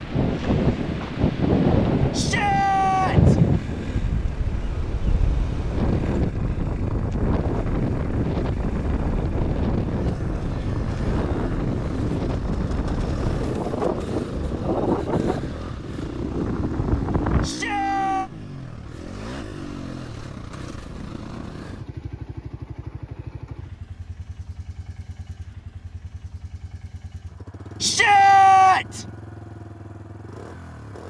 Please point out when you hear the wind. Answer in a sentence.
The wind can be heard from 0.0 to 17.5 s.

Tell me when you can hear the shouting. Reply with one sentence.
The shouting can be heard from 2.1 to 3.4 s, from 17.4 to 18.3 s and from 27.8 to 29.1 s.